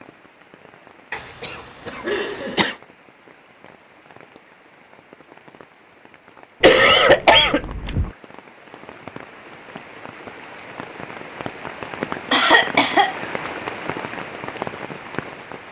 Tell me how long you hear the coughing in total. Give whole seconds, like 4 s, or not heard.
4 s.